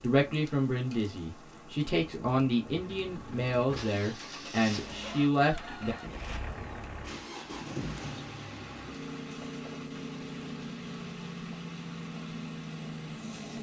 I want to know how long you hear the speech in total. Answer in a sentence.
The speech can be heard for 6 seconds in total.